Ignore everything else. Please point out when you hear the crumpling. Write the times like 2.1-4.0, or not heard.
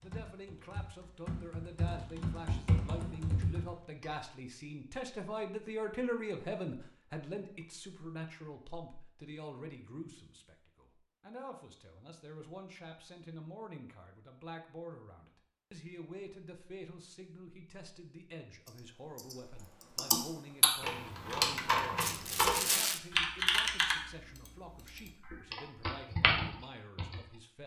22.0-23.0.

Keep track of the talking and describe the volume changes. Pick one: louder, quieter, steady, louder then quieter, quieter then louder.
quieter.